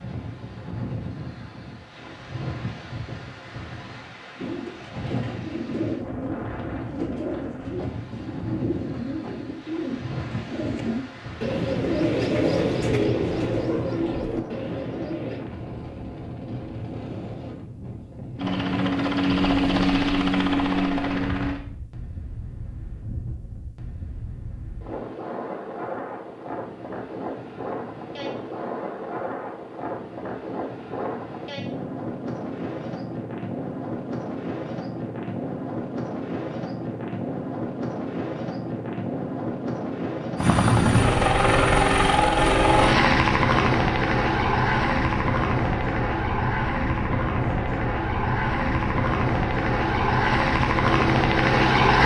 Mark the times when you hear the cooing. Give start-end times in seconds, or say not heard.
4.3-15.4.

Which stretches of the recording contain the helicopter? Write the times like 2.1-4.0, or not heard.
18.4-21.6, 40.4-52.0.